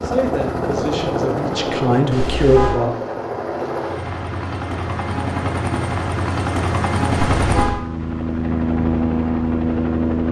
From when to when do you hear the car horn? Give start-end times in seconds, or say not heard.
2.1-2.8, 7.1-7.8.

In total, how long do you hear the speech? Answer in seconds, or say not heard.
3 s.